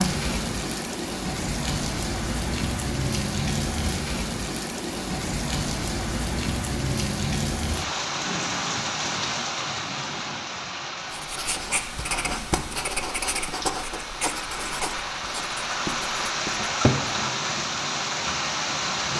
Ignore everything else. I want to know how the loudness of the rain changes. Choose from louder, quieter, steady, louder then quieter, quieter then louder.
quieter then louder.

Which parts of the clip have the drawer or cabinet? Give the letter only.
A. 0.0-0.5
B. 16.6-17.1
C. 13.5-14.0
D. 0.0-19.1
B.